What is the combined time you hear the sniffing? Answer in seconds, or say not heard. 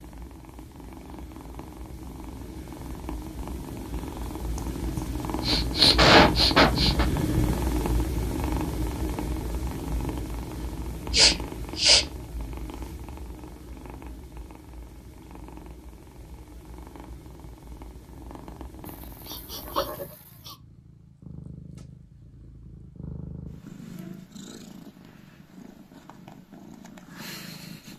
5 s.